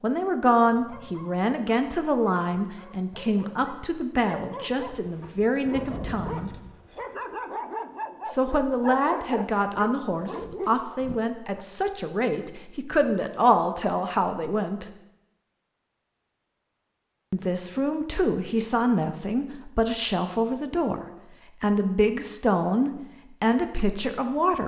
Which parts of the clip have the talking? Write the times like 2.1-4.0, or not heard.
0.0-6.5, 8.2-14.8, 17.3-24.6.